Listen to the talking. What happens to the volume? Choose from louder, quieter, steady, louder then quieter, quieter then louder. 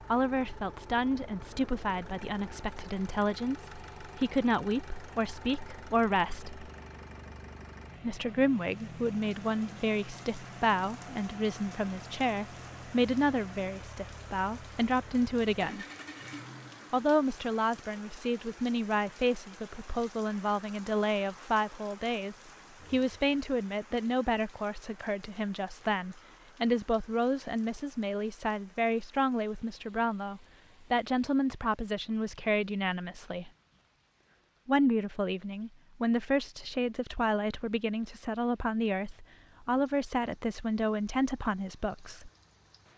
steady.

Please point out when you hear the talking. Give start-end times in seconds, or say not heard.
0.1-6.7, 8.0-15.8, 16.9-33.5, 34.6-42.3.